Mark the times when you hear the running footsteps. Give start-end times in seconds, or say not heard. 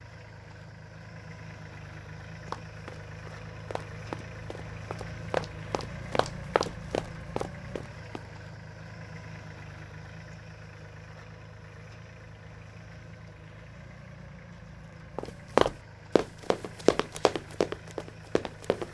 2.5-8.3, 15.2-18.8.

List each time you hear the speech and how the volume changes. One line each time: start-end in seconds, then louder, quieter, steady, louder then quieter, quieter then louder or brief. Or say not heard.
not heard.